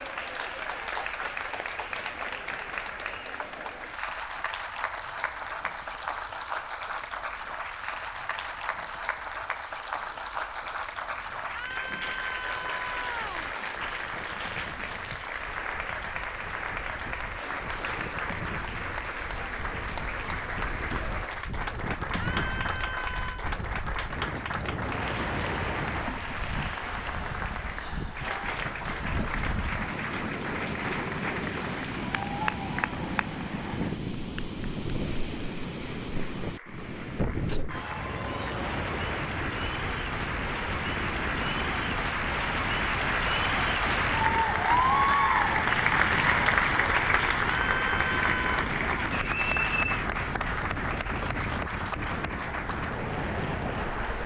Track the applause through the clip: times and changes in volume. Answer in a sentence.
You can hear the applause from 0.0 to 54.2 s, getting louder.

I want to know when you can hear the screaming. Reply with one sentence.
The screaming can be heard from 11.5 to 13.5 s, from 22.1 to 23.5 s and from 47.4 to 48.7 s.